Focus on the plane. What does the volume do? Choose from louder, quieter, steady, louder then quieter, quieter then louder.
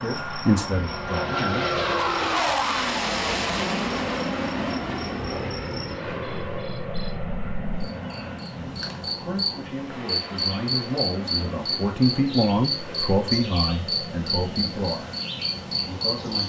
quieter.